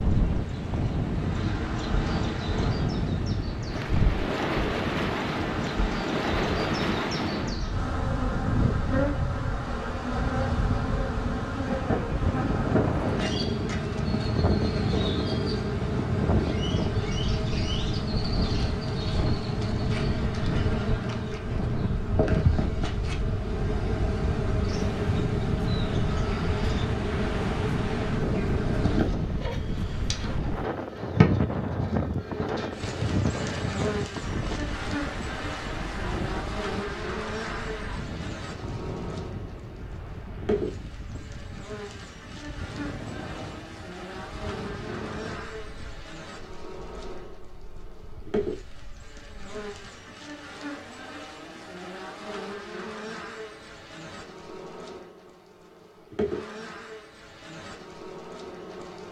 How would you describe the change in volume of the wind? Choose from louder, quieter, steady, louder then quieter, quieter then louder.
quieter.